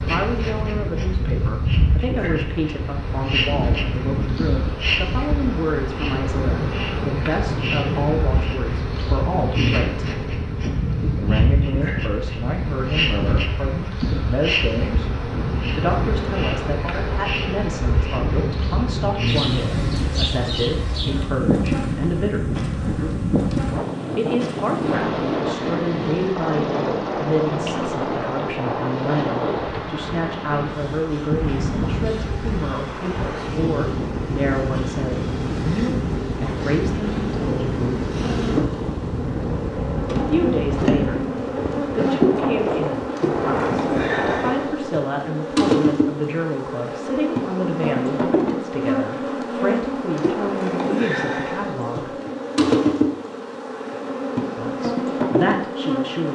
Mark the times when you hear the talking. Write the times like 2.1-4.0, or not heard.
0.0-10.2, 11.2-15.1, 15.8-22.5, 24.1-38.1, 40.1-52.1, 54.5-56.3.